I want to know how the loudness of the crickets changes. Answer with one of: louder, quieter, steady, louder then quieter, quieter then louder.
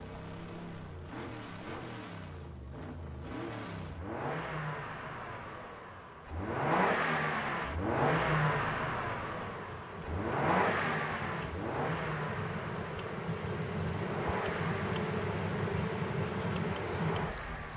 quieter then louder.